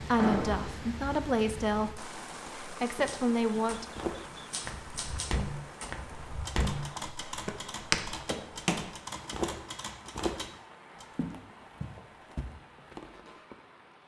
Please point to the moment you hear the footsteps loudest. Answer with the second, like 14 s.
8 s.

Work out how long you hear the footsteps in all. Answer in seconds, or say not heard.
10 s.